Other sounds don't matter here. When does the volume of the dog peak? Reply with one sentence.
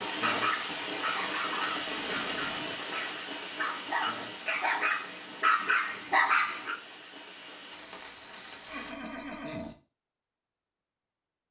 The volume of the dog peaks at 6 seconds.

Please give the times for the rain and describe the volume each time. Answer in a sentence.
The rain can be heard from 0.0 to 8.9 s, getting quieter.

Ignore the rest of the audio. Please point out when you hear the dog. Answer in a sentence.
The dog can be heard from 0.0 to 6.8 s.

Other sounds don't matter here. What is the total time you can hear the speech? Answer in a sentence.
You can't hear the speech here.